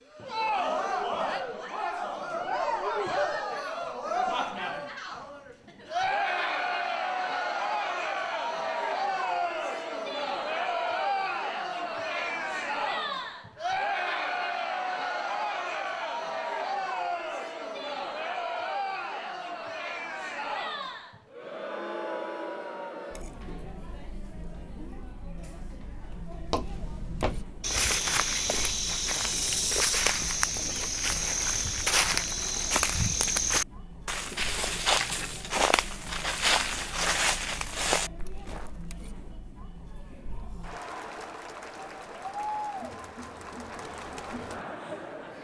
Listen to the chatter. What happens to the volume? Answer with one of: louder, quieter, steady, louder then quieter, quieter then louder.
quieter then louder.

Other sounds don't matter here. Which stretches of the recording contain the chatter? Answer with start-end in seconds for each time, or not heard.
0.1-45.3.